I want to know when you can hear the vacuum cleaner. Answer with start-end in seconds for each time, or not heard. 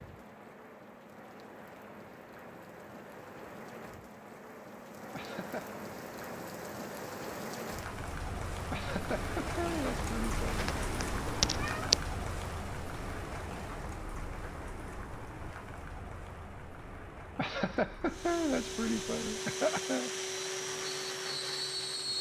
18.1-22.1.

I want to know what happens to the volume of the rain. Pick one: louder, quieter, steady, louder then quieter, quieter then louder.
louder then quieter.